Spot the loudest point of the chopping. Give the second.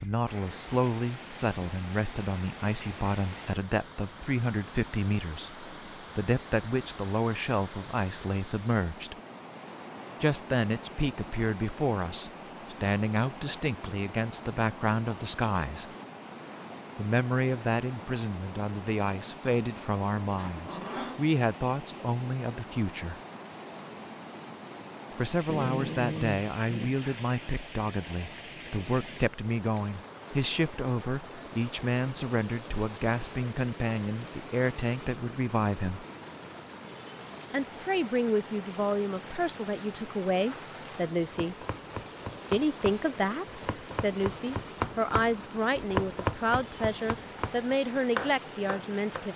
46 s.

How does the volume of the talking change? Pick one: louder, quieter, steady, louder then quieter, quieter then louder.
steady.